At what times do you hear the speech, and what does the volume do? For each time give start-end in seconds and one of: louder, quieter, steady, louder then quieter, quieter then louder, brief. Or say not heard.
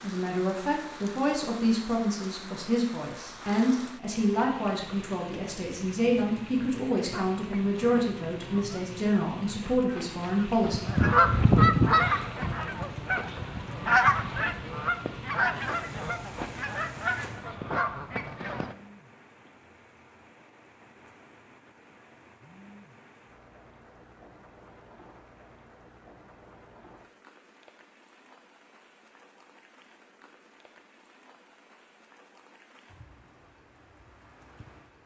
0.0-10.8 steady.